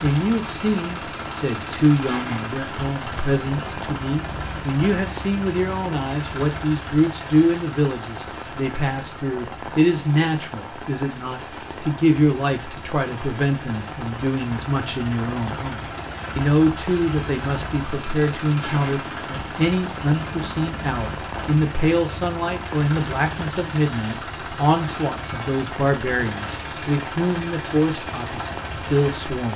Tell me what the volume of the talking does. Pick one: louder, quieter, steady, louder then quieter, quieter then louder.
steady.